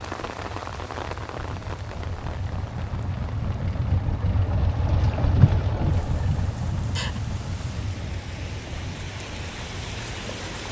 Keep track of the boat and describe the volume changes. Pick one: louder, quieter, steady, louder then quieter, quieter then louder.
louder then quieter.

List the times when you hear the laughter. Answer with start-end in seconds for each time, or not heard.
5.3-7.2.